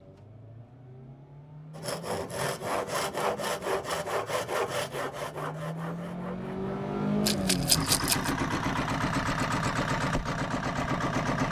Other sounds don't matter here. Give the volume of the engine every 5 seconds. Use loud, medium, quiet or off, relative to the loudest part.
quiet, loud, loud.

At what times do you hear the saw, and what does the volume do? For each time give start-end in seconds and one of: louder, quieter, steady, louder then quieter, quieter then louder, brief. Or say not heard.
1.8-6.7 quieter.